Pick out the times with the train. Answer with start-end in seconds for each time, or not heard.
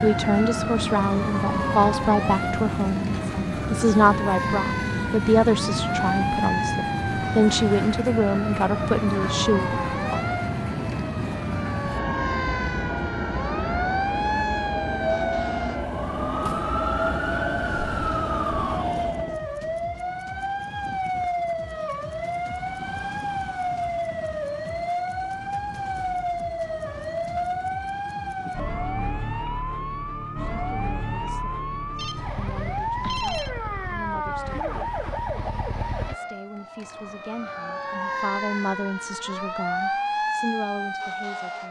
0.0-19.4.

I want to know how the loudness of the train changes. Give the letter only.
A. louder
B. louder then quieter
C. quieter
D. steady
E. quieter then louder
D.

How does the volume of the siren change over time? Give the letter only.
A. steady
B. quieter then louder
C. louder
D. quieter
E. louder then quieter
A.